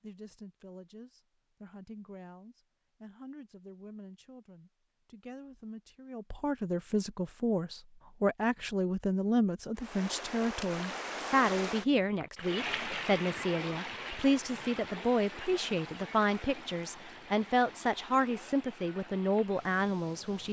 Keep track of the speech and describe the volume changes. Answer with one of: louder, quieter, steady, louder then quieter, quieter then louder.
louder.